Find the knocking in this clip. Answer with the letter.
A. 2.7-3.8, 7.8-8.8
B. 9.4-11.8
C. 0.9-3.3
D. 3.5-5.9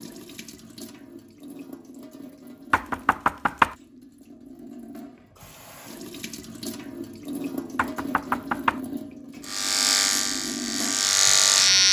A.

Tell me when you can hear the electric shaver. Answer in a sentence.
You can hear the electric shaver from 9.4 to 11.8 s.